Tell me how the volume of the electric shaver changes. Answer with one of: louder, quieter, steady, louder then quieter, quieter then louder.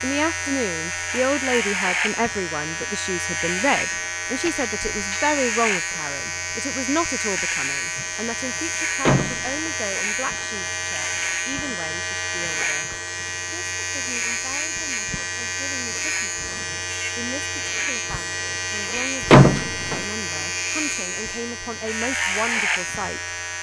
steady.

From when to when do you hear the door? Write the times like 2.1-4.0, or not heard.
4.3-5.3, 9.1-9.7, 19.3-20.1.